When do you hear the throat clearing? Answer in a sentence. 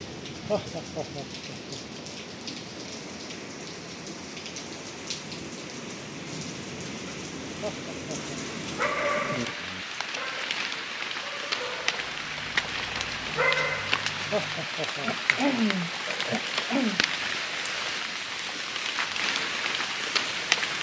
You can hear the throat clearing from 15.0 to 17.1 s.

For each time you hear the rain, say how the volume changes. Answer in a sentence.
You can hear the rain from 0.0 to 20.7 s, getting louder.